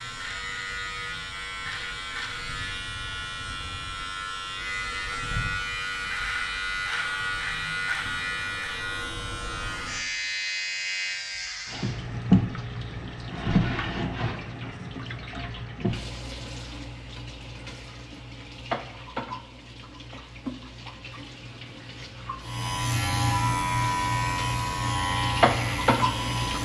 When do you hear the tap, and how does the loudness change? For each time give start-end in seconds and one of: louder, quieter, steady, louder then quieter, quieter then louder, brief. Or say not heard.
11.7-26.5 quieter then louder.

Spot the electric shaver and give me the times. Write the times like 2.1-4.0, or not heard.
0.0-11.9, 22.4-26.5.